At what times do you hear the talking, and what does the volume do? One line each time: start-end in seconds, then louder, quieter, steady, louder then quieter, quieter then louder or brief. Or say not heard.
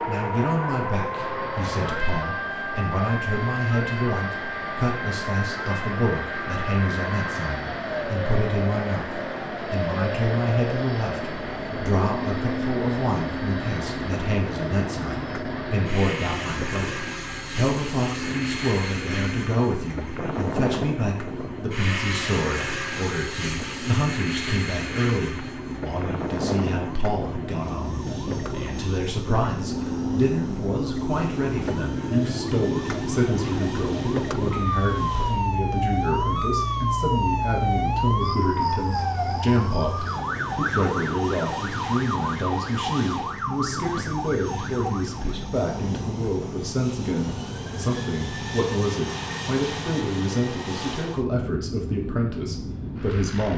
0.1-53.5 steady.